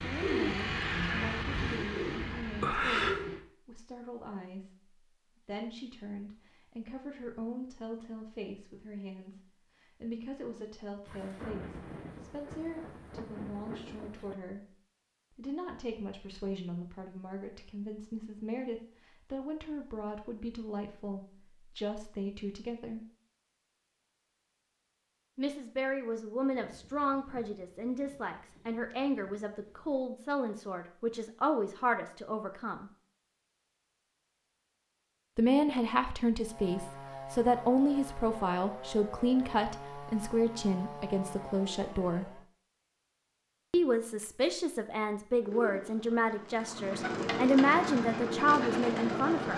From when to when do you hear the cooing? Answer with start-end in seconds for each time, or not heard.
0.0-3.4, 45.4-49.5.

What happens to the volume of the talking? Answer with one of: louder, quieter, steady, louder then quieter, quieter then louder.
louder.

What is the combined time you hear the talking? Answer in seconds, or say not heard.
42 s.